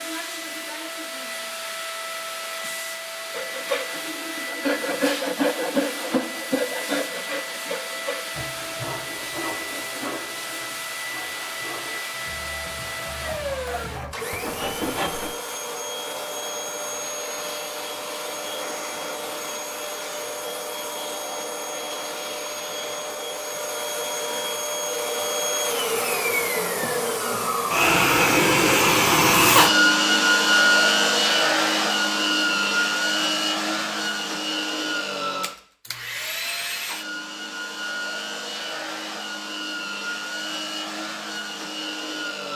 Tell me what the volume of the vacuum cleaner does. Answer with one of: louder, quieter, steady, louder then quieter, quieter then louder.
louder then quieter.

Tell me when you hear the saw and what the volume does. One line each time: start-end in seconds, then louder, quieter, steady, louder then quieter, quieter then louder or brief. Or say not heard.
3.3-15.4 quieter then louder.